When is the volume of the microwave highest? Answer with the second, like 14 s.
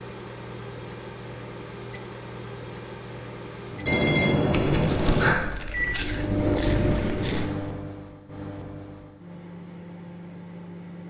7 s.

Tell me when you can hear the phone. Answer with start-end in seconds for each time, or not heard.
3.9-5.3.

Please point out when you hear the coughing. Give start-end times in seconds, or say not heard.
not heard.